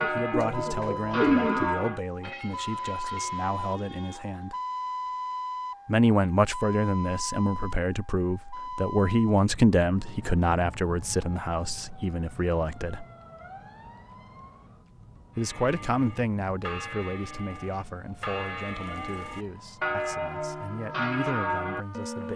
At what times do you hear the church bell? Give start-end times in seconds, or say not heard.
0.0-3.5, 15.3-22.3.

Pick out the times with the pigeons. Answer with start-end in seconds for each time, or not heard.
0.0-1.9.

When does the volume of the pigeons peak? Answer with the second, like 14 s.
1 s.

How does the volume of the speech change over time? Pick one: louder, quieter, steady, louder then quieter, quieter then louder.
louder then quieter.